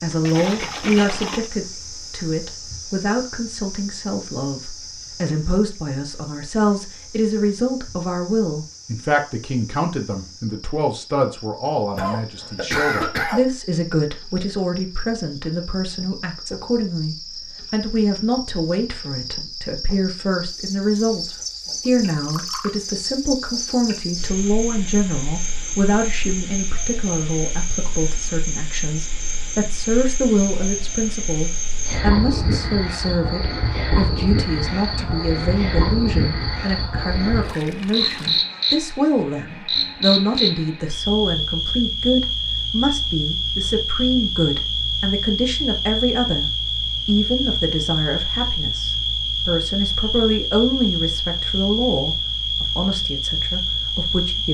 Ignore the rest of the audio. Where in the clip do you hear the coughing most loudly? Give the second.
13 s.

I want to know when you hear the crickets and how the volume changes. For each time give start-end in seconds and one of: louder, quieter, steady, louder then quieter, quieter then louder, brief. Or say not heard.
0.0-54.4 louder.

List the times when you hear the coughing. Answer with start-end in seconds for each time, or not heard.
11.9-13.4, 34.8-35.2.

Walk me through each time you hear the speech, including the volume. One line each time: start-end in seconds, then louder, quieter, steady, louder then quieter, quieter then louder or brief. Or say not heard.
0.0-54.4 steady.